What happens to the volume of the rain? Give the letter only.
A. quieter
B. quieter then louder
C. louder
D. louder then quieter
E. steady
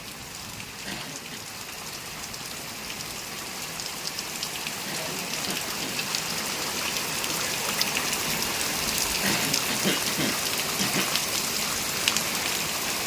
C.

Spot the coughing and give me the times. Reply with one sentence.
You can hear the coughing from 0.8 to 1.4 s, from 4.8 to 6.0 s and from 9.2 to 11.1 s.